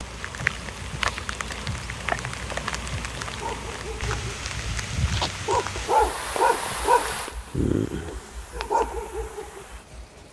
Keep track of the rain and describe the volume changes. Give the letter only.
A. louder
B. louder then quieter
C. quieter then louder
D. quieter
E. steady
D.